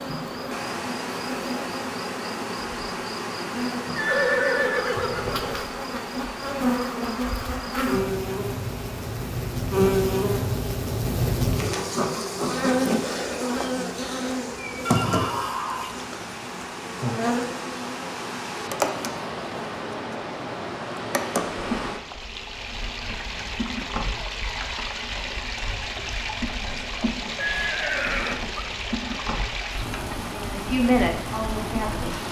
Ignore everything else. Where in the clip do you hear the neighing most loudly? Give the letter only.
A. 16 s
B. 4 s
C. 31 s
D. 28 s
B.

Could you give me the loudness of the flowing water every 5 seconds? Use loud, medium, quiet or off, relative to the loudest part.
loud, medium, medium, loud, loud, loud, loud.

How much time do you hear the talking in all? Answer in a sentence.
The talking can be heard for 2 seconds in total.